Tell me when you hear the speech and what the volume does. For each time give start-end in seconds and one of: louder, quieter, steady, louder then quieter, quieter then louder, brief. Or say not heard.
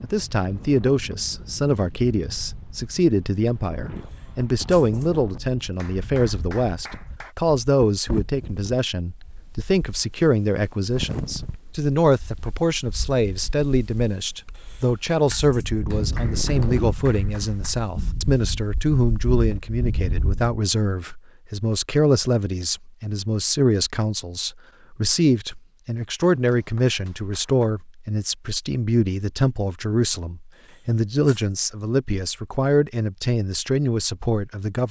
0.0-34.8 steady.